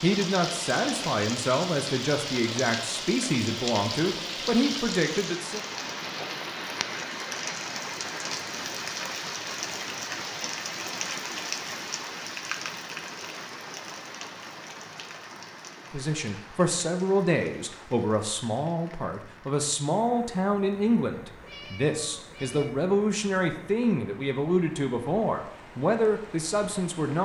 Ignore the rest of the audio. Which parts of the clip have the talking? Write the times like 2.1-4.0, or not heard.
0.0-5.6, 15.9-27.2.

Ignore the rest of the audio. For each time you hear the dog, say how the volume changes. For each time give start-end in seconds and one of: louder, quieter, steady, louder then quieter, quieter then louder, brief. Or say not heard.
not heard.